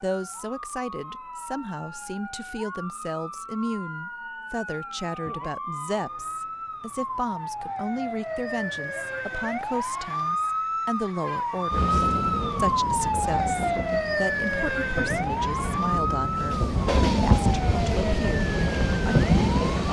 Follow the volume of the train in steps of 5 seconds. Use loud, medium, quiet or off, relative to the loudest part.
off, off, medium, loud.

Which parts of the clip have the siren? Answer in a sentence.
The siren can be heard from 0.0 to 19.8 s.